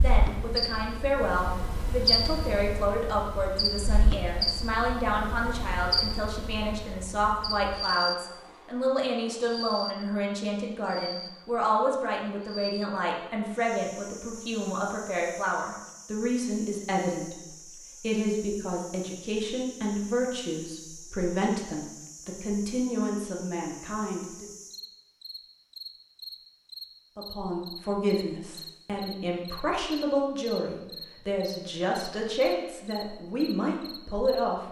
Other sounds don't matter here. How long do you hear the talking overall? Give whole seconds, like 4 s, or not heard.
31 s.